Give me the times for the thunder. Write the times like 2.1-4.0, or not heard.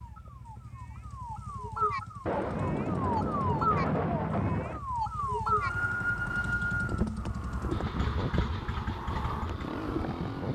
2.2-4.8.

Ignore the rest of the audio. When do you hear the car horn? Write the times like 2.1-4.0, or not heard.
not heard.